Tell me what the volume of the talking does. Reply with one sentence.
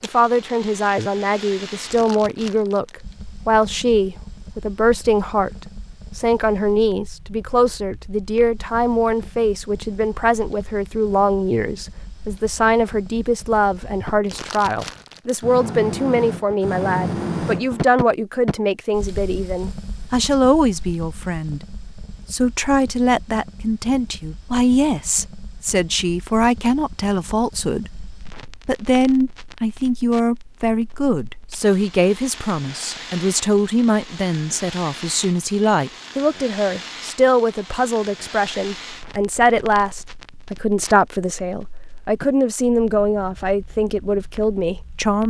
The loudness of the talking stays about the same.